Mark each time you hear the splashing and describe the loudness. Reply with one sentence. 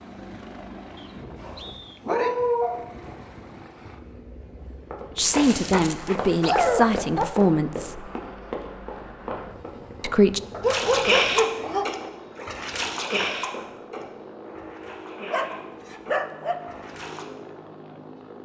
The splashing can be heard from 10.7 to 17.2 s, getting quieter.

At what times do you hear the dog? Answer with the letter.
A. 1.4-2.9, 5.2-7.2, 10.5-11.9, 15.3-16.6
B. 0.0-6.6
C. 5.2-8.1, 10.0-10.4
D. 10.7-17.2
A.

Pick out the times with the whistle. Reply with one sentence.
You can hear the whistle from 0.9 to 2.0 s.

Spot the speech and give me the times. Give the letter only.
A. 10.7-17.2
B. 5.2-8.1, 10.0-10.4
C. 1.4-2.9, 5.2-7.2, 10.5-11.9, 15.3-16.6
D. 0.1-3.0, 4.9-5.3
B.